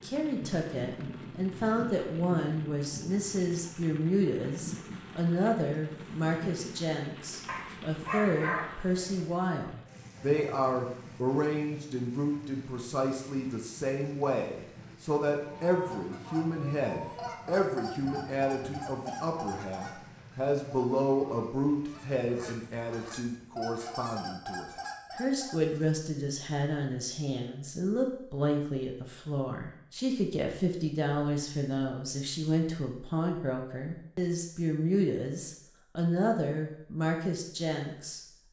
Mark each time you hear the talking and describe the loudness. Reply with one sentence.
The talking can be heard from 0.0 to 38.2 s, at a steady volume.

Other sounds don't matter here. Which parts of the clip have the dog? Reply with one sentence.
You can hear the dog from 7.5 to 9.3 s.